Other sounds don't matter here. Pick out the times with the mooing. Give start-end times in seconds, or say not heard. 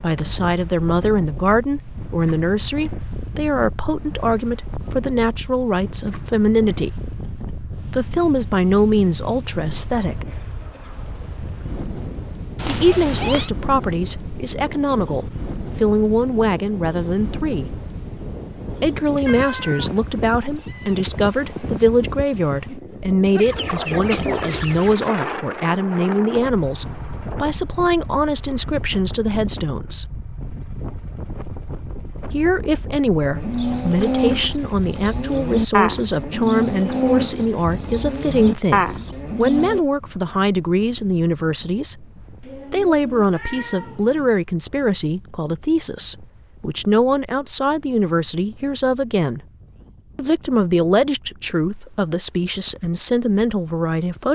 33.4-39.8.